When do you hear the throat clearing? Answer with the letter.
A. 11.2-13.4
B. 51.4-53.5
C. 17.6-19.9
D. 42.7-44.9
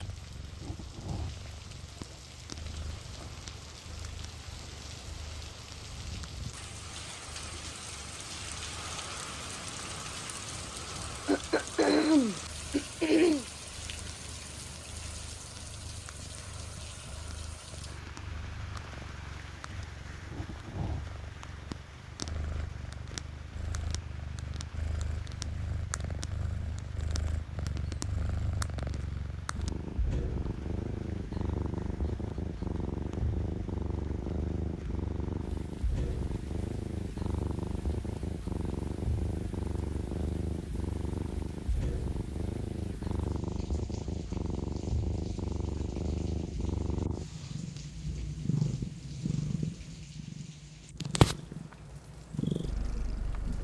A.